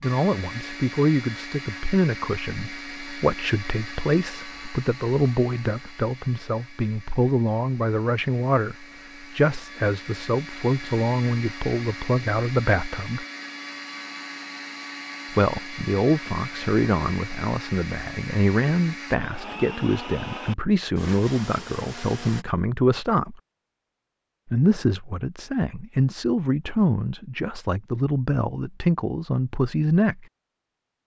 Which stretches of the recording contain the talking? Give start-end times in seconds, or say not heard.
0.0-13.2, 15.3-23.4, 24.4-30.2.